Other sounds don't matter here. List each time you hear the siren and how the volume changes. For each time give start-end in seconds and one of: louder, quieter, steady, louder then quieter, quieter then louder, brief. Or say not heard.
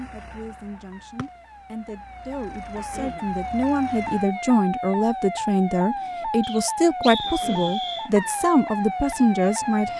0.2-9.9 louder.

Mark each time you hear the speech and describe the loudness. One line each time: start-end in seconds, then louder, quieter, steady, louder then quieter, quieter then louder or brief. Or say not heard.
0.0-9.9 louder.